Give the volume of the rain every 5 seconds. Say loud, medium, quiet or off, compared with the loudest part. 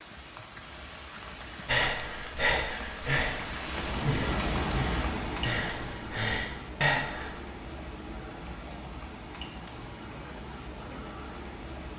loud, loud, medium.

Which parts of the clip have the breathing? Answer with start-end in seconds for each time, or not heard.
1.6-7.3.